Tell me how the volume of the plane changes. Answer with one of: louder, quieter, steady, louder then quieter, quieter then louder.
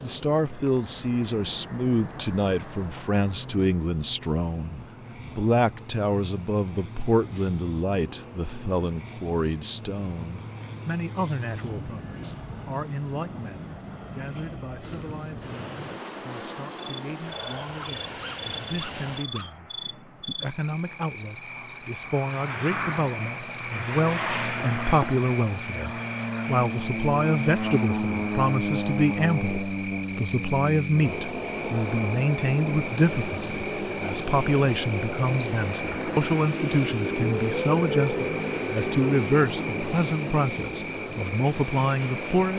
louder.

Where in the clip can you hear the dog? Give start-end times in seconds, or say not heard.
17.7-19.5.